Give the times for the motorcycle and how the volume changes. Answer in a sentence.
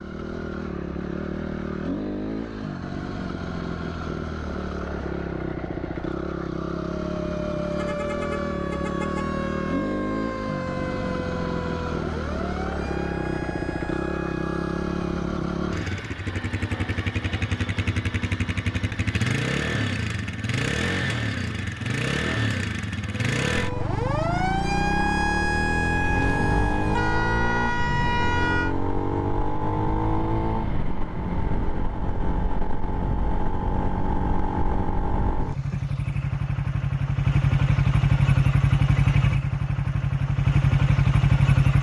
The motorcycle can be heard from 0.0 to 41.7 s, getting louder.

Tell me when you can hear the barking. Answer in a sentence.
The barking can't be heard in this clip.